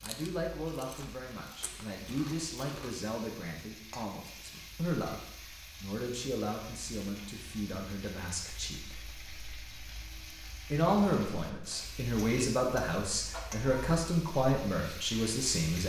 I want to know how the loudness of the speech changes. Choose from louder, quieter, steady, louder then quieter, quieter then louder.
louder.